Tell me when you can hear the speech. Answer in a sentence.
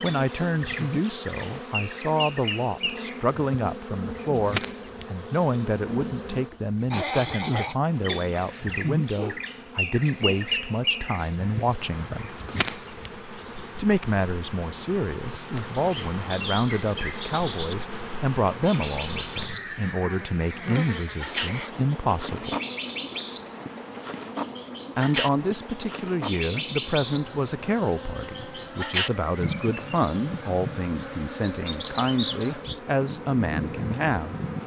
You can hear the speech from 0.0 to 12.3 s, from 13.8 to 22.6 s and from 24.9 to 34.4 s.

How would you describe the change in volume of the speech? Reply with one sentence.
The volume of the speech stays about the same.